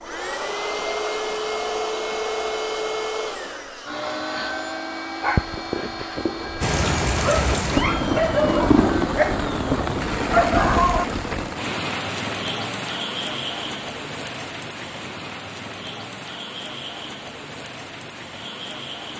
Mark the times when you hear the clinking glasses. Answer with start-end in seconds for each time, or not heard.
not heard.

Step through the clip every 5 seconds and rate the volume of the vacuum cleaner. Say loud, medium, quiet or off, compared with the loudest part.
loud, medium, off, off.